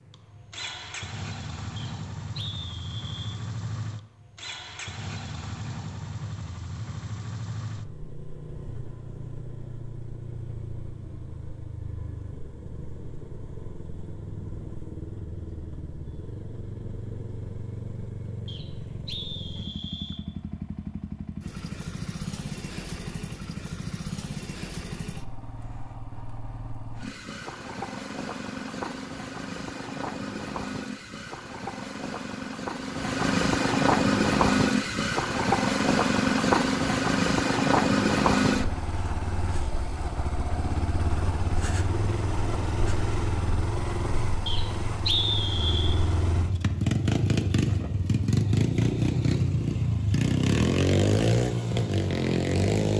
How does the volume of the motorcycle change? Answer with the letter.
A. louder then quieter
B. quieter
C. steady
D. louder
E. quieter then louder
D.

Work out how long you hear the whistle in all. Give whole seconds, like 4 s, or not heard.
5 s.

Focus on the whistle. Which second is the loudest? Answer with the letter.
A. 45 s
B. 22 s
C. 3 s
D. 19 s
A.